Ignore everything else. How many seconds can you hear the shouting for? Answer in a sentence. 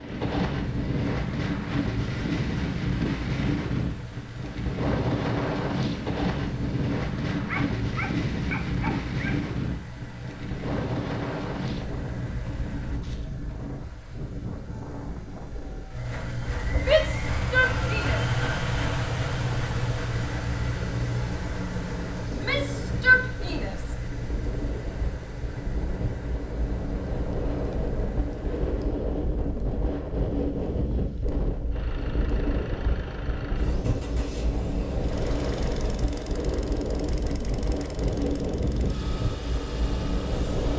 You can hear the shouting for 3 seconds altogether.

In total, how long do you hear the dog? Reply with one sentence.
The dog can be heard for 2 seconds in total.